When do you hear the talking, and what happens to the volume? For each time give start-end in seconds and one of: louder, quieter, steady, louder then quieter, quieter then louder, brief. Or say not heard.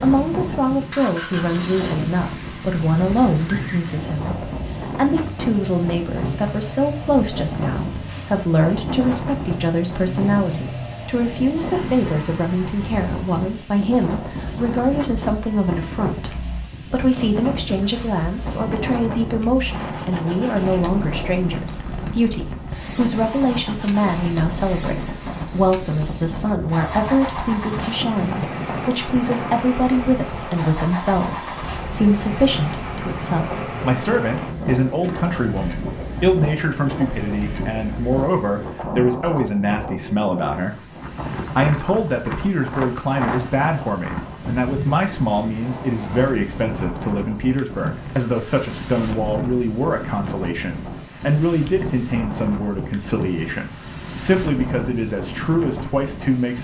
0.0-56.5 steady.